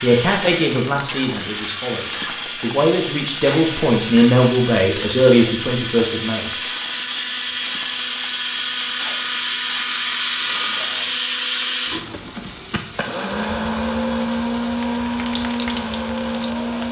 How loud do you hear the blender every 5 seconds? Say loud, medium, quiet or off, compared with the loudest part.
medium, loud, loud, loud.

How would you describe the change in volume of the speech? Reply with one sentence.
The loudness of the speech goes down, then up.